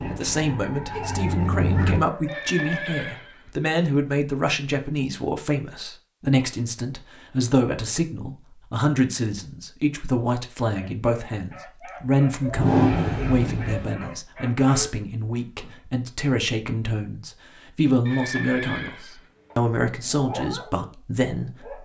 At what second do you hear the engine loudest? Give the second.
13 s.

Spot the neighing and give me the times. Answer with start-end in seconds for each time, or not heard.
2.2-3.6, 18.1-19.6.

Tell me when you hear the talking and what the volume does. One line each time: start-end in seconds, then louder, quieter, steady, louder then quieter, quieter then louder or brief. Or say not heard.
0.1-21.7 steady.